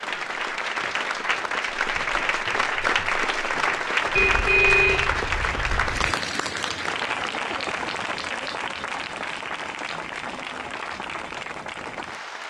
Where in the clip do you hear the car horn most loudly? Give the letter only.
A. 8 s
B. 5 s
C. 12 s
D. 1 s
B.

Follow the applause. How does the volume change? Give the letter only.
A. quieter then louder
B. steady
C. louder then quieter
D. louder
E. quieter
E.